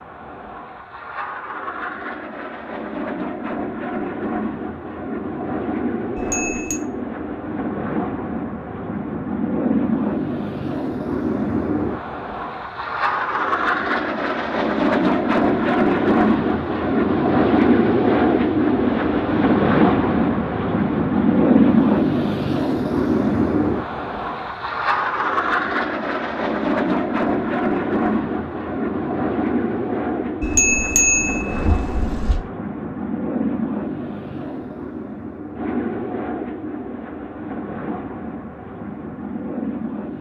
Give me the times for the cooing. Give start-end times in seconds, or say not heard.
not heard.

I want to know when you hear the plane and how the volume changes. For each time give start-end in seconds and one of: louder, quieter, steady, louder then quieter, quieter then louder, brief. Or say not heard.
0.0-40.1 louder then quieter.